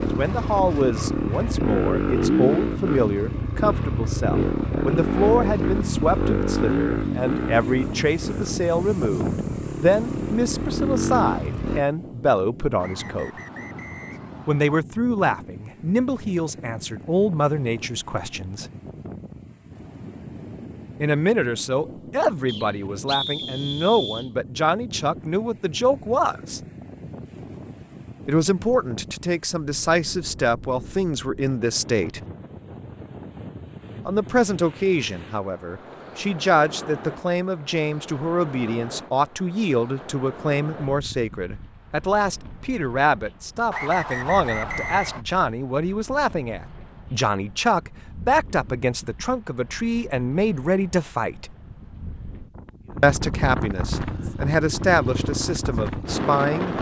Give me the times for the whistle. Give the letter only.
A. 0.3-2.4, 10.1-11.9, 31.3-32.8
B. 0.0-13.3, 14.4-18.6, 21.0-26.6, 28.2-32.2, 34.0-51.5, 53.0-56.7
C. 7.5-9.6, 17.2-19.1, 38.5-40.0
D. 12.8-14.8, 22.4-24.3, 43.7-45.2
D.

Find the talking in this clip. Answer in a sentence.
You can hear the talking from 0.0 to 13.3 s, from 14.4 to 18.6 s, from 21.0 to 26.6 s, from 28.2 to 32.2 s, from 34.0 to 51.5 s and from 53.0 to 56.7 s.